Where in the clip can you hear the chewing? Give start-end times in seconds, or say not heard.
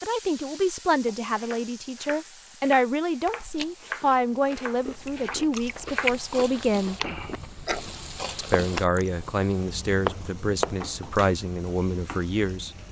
3.2-9.1.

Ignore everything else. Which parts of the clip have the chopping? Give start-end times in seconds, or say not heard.
1.3-10.9.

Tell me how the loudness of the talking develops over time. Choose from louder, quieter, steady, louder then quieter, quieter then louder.
steady.